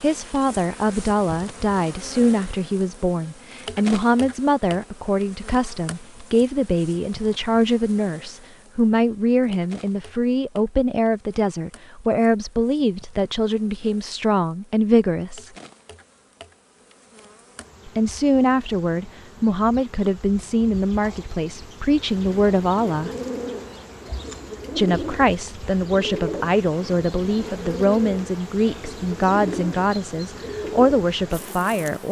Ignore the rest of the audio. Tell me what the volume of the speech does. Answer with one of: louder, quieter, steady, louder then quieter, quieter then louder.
steady.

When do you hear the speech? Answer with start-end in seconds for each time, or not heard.
0.0-15.5, 17.9-23.1, 24.8-32.0.